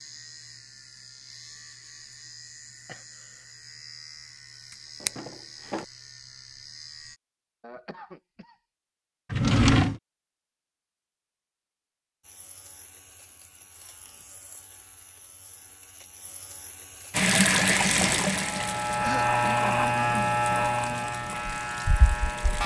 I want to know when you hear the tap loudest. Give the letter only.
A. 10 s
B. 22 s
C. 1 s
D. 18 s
D.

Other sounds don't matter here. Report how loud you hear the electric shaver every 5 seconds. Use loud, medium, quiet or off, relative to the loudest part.
quiet, quiet, quiet, loud, loud.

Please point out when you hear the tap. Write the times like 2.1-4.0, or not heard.
17.1-22.6.